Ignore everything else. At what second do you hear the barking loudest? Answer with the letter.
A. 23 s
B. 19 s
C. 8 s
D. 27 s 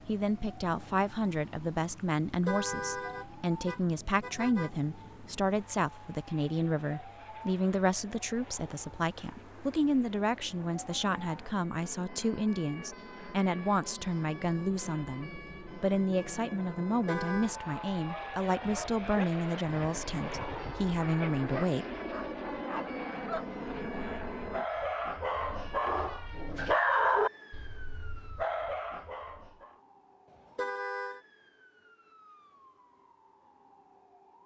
D.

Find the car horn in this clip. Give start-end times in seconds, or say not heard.
2.5-4.7, 17.1-17.6, 30.4-31.2.